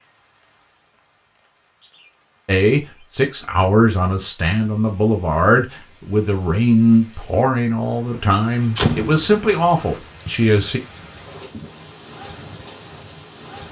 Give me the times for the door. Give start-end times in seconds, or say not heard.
8.2-9.3.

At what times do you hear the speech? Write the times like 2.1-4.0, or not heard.
2.5-10.8.